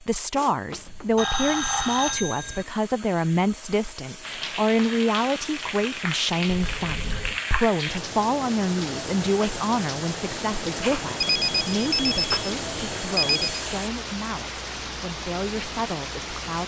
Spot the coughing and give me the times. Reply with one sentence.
The coughing can't be heard in this clip.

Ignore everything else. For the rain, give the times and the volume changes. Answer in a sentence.
The rain can be heard from 4.2 to 16.6 s, at a steady volume.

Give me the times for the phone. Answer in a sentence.
The phone can be heard from 0.7 to 2.6 s, from 6.5 to 7.4 s and from 11.2 to 13.6 s.